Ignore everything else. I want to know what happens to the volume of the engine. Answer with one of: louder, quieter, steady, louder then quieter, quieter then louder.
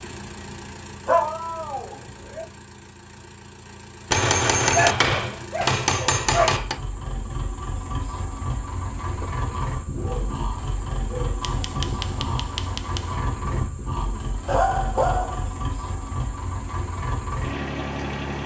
louder.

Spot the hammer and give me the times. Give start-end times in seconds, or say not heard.
4.1-6.8, 11.4-13.2.